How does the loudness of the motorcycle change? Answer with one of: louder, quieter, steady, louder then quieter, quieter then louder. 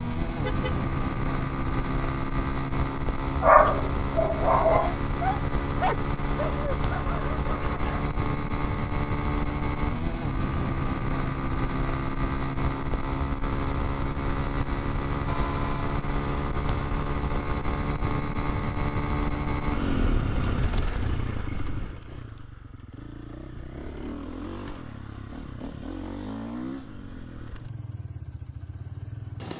quieter.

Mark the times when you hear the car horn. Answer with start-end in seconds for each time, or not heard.
0.4-0.8, 15.2-16.1, 19.9-21.3.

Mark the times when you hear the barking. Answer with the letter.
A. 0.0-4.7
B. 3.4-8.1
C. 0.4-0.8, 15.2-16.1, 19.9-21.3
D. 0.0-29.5
B.